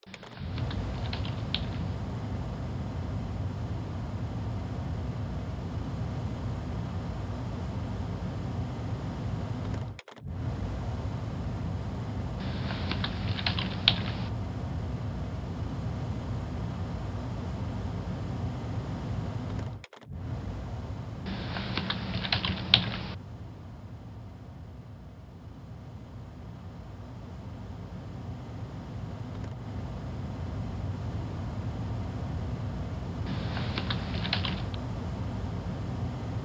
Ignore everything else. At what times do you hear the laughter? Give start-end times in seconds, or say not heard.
not heard.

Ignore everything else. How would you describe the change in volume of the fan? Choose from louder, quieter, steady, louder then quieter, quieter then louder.
quieter then louder.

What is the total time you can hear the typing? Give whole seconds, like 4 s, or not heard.
7 s.